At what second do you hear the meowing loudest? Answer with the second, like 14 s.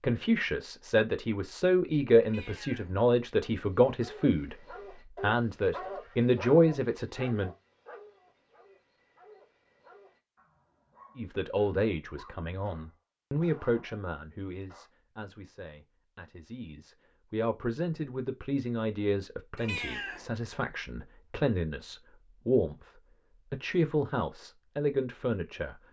20 s.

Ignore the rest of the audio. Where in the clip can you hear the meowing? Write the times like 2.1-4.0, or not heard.
2.2-3.0, 19.6-20.3.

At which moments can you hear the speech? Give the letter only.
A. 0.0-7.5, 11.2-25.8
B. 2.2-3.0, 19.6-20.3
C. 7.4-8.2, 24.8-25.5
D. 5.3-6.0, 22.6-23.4
A.